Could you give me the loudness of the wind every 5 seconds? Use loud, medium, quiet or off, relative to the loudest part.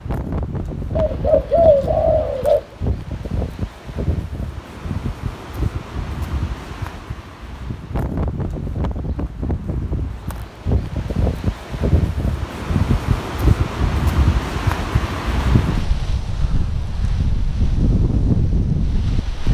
medium, medium, loud, loud.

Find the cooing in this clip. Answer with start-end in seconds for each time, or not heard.
0.9-2.6.